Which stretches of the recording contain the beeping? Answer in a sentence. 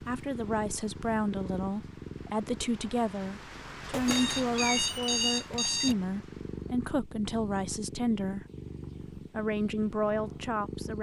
The beeping can be heard from 3.9 to 6.0 s.